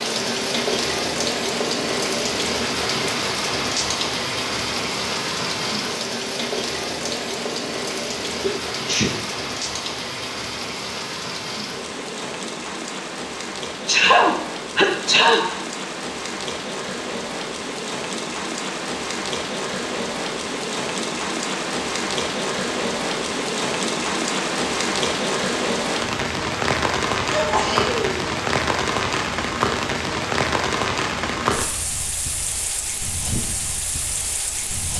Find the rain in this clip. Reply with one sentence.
The rain can be heard from 0.0 to 34.9 s.